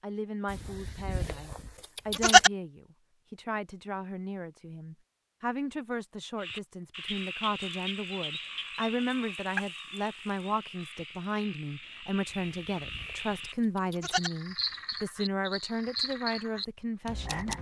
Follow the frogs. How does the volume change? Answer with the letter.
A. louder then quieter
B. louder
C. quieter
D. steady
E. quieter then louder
E.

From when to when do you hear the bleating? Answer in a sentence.
You can hear the bleating from 0.5 to 2.5 s and from 12.3 to 14.3 s.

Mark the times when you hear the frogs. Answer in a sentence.
The frogs can be heard from 6.3 to 17.5 s.